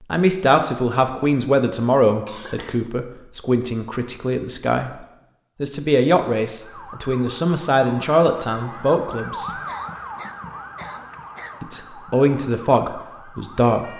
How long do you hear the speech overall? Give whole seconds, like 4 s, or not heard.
12 s.